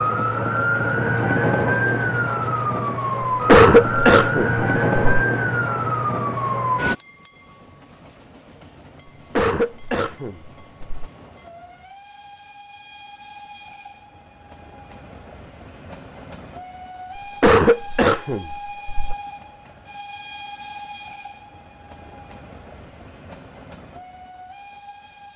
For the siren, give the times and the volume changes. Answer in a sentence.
You can hear the siren from 0.0 to 7.0 s, at a steady volume.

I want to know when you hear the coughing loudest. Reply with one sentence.
The loudest moment of the coughing is at 4 seconds.